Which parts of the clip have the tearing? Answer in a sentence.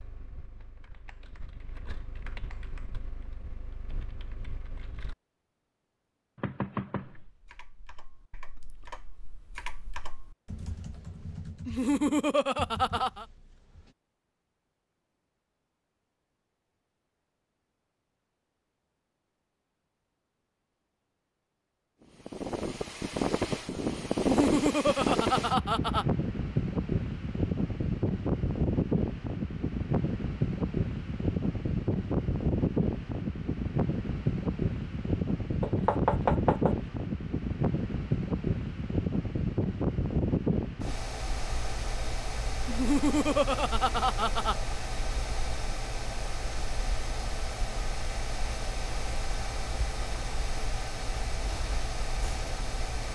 The tearing can't be heard in this clip.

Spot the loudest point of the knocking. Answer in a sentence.
The volume of the knocking peaks at 36 seconds.